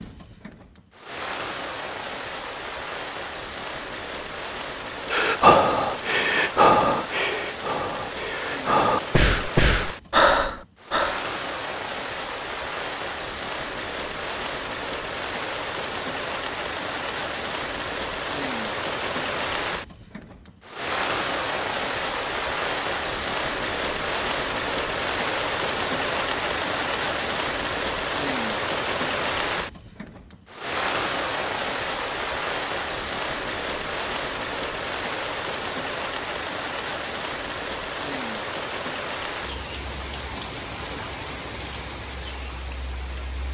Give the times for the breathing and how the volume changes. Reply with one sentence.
The breathing can be heard from 5.1 to 11.2 s, getting quieter then louder.